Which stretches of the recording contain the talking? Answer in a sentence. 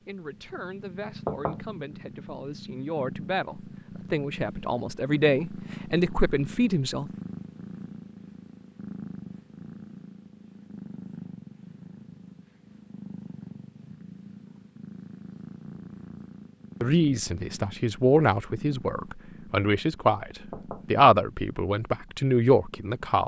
You can hear the talking from 0.1 to 7.1 s and from 16.8 to 23.2 s.